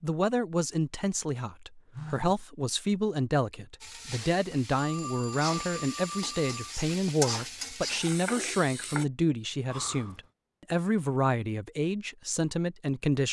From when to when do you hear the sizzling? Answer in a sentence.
The sizzling can be heard from 3.8 to 9.1 s.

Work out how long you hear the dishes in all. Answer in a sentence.
You can't hear the dishes here.